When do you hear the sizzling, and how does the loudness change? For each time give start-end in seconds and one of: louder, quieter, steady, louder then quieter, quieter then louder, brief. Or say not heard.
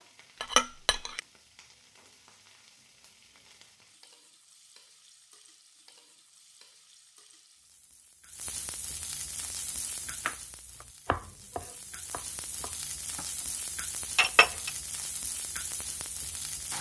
0.0-16.7 louder.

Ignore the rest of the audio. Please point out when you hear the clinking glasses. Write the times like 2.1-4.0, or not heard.
0.4-1.2, 14.2-14.7.